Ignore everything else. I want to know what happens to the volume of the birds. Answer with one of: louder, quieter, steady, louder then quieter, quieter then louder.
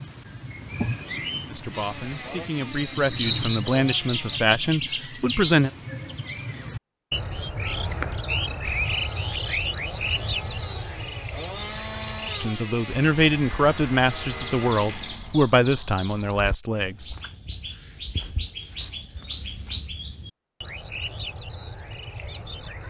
quieter.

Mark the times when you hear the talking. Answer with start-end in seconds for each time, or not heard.
1.5-5.7, 12.4-17.1.